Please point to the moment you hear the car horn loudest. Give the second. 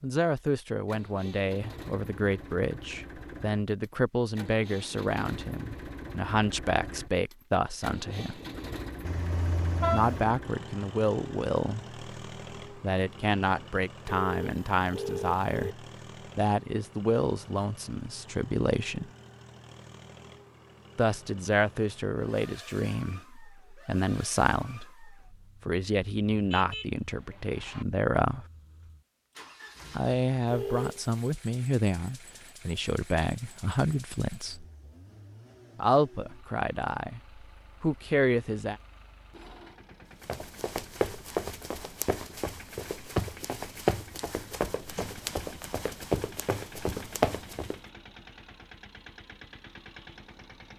10 s.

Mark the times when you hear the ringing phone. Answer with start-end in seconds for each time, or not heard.
14.1-15.8, 30.4-31.2.